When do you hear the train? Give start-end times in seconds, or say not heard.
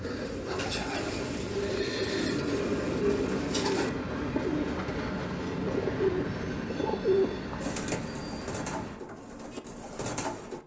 0.0-9.0.